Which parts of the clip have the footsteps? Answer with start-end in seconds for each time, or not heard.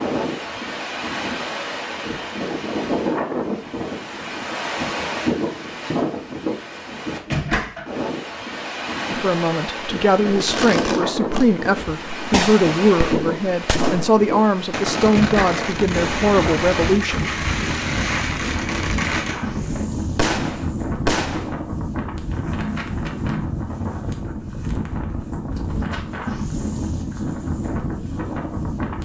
not heard.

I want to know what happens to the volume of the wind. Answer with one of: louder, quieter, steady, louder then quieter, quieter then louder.
steady.